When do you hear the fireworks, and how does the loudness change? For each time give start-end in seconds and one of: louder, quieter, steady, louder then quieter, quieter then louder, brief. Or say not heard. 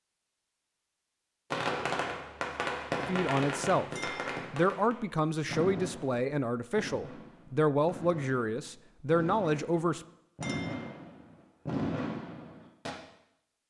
1.5-12.9 quieter then louder.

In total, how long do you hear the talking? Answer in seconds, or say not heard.
7 s.